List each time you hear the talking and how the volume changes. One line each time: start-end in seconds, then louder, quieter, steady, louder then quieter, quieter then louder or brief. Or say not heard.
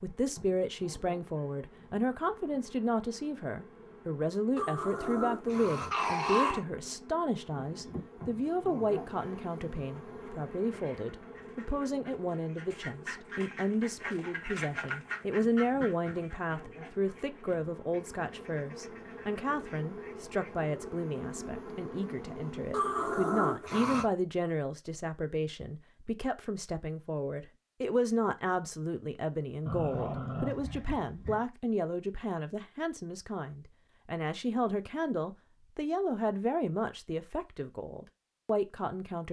0.0-39.2 steady.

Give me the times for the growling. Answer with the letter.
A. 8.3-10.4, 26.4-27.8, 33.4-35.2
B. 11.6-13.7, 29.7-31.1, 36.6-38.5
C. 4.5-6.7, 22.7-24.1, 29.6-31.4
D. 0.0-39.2
C.